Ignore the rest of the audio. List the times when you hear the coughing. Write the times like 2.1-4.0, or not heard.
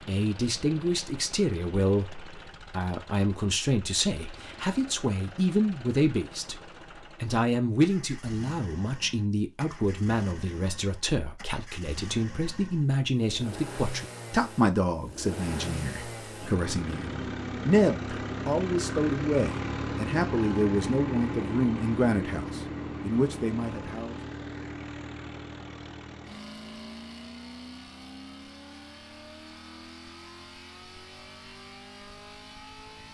not heard.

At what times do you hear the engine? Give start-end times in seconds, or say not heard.
0.0-33.0.